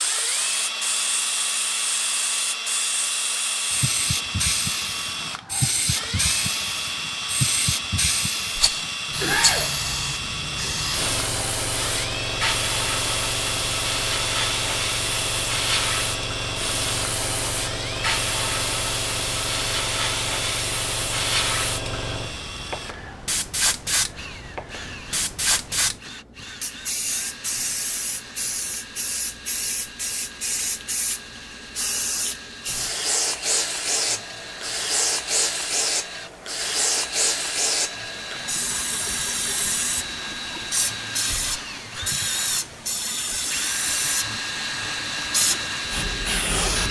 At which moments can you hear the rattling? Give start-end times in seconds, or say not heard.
8.6-9.7.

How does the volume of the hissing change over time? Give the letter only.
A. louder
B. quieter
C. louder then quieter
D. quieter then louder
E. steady
E.